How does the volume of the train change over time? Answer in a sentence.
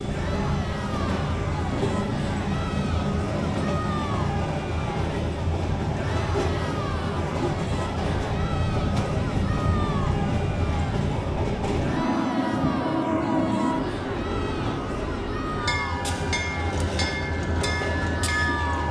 The loudness of the train stays about the same.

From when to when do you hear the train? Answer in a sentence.
The train can be heard from 0.0 to 18.8 s.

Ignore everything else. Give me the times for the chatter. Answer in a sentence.
The chatter can be heard from 0.1 to 18.8 s.